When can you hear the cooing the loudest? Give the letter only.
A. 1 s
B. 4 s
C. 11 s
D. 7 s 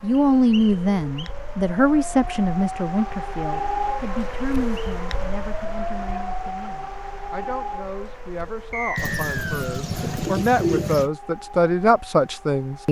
C.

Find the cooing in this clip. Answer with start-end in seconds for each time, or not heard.
8.9-11.1.